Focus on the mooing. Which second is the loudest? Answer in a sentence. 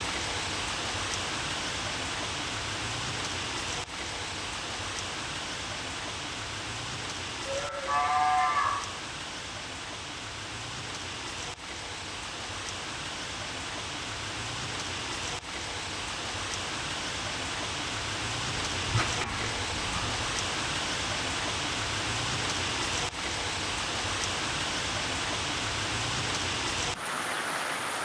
The volume of the mooing peaks at 8 seconds.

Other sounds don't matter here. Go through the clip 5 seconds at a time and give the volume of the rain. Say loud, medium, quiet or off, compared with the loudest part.
loud, medium, medium, loud, loud, loud.